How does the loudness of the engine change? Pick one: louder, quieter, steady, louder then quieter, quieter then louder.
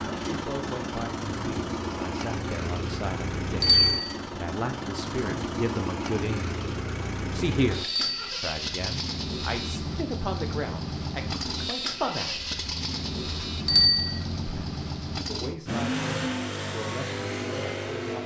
steady.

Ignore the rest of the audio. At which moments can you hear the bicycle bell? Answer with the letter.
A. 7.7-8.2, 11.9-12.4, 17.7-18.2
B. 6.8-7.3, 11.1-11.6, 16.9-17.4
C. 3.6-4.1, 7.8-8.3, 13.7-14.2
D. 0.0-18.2
C.